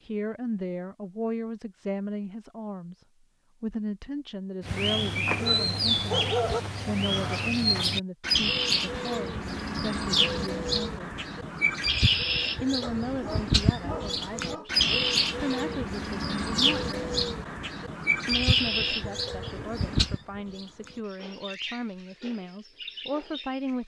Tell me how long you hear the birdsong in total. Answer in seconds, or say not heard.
19 s.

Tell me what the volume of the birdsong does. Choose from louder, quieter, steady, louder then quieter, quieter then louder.
quieter.